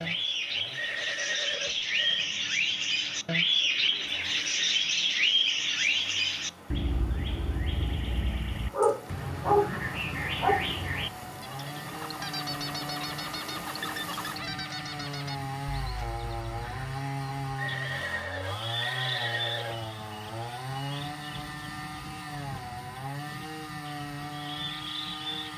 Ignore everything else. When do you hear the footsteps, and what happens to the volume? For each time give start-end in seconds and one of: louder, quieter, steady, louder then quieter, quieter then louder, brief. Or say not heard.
not heard.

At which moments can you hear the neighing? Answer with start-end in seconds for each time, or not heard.
0.8-2.3, 17.6-19.8.